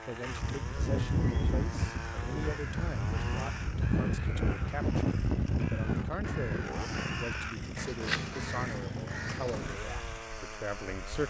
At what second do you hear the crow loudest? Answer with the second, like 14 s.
8 s.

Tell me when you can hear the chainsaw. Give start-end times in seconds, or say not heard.
0.0-11.2.